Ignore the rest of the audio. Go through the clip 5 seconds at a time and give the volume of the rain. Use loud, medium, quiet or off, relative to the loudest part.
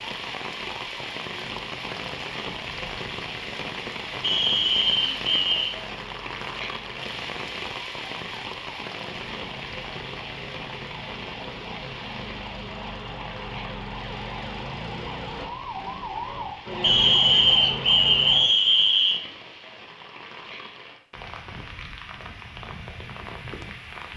loud, loud, medium, medium, medium.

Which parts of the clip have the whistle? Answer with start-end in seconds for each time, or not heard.
4.2-5.7, 16.8-19.2.